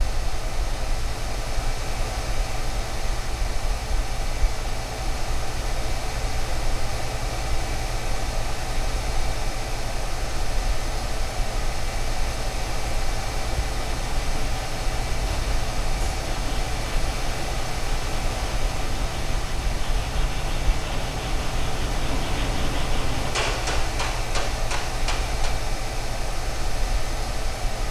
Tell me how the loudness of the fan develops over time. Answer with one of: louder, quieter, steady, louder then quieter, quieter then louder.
steady.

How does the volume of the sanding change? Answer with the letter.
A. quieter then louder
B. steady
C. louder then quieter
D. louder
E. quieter
D.